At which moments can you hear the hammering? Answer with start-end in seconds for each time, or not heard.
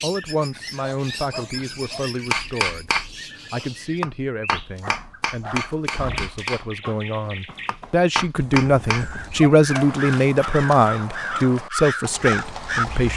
2.3-9.1.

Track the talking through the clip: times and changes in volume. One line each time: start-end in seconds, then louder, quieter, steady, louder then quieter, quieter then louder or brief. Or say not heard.
0.0-13.1 louder.